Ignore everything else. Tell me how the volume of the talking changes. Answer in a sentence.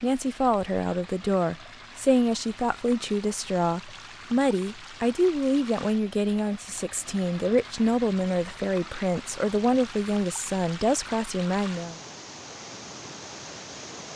The loudness of the talking stays about the same.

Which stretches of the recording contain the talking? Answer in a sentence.
The talking can be heard from 0.0 to 12.0 s.